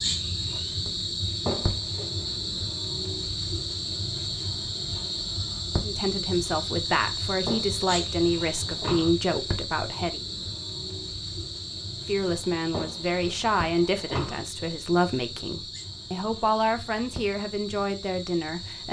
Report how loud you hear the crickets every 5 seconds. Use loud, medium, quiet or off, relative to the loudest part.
loud, loud, medium, medium.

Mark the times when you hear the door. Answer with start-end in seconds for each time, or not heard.
1.4-2.4, 7.5-9.1, 12.7-14.4.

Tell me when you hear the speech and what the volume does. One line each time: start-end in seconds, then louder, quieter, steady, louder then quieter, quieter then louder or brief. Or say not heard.
5.8-10.2 steady
12.1-18.8 steady.